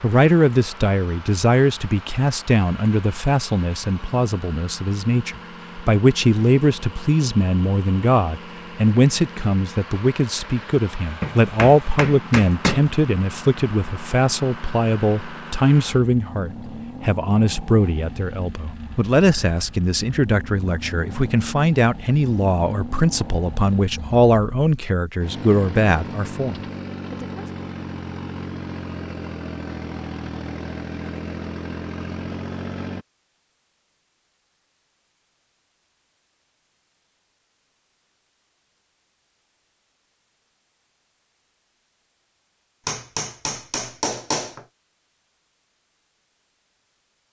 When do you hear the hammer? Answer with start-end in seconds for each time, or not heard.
11.2-12.9, 42.9-44.6.